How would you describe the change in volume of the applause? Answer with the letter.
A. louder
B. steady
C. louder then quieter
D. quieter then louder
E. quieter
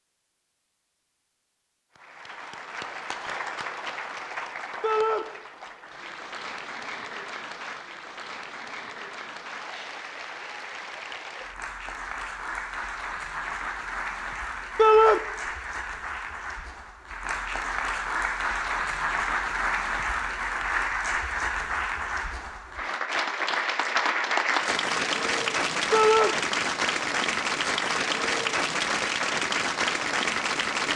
A.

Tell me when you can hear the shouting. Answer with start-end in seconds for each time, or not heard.
4.8-5.2, 14.8-15.2, 25.9-26.4.